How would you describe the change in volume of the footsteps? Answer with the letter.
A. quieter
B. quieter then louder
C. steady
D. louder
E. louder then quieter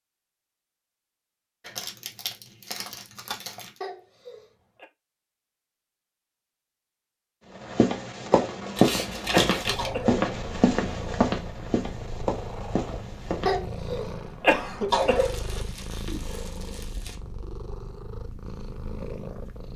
A.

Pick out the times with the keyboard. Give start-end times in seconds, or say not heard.
not heard.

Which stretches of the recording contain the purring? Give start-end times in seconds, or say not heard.
9.6-19.7.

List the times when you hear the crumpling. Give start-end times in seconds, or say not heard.
1.6-3.8, 8.8-9.9, 15.1-17.1.